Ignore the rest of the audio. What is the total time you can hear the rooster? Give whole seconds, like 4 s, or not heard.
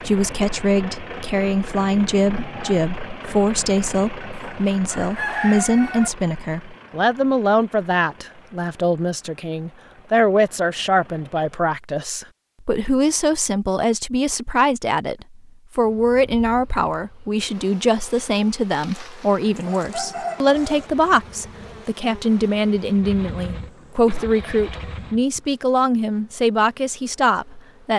4 s.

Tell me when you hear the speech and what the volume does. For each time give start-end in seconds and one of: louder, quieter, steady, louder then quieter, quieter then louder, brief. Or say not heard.
0.0-27.9 steady.